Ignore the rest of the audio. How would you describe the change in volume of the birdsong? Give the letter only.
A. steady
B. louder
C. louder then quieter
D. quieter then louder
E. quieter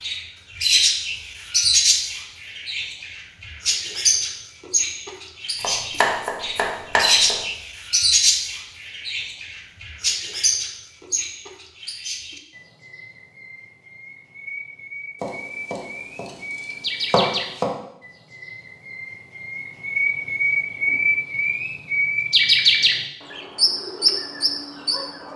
D.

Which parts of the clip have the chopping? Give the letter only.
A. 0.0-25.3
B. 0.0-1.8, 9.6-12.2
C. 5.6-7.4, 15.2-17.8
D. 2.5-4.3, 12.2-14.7
C.